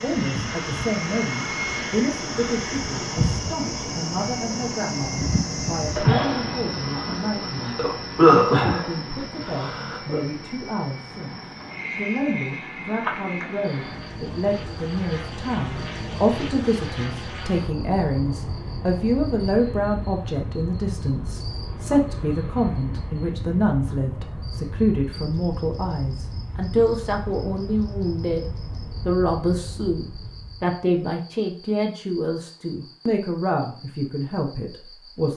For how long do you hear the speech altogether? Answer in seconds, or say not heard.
35 s.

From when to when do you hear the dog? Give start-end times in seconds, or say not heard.
not heard.